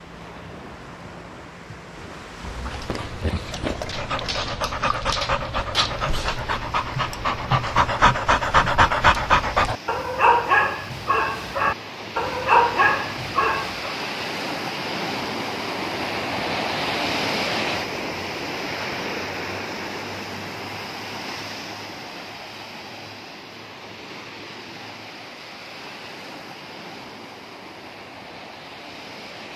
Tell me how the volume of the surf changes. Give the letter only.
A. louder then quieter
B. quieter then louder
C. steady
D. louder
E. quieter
A.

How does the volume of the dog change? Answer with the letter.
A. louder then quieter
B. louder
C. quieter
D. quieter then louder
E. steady
B.